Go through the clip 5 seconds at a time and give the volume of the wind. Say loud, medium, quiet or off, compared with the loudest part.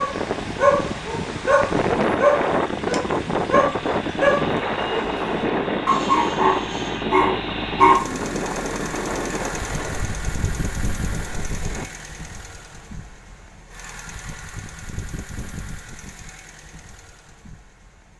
loud, loud, quiet, off.